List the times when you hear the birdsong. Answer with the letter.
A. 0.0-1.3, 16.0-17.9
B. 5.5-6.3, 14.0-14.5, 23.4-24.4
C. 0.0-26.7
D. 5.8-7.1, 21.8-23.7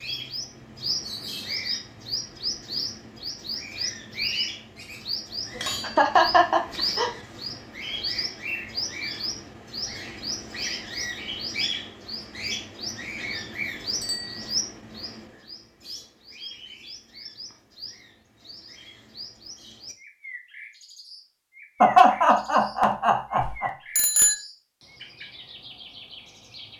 C.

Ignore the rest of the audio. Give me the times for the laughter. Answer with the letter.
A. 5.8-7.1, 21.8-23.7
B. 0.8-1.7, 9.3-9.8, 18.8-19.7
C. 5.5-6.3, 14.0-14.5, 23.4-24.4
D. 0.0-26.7
A.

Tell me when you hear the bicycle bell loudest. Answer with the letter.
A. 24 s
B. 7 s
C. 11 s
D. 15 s
A.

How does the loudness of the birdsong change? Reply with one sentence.
The loudness of the birdsong goes down.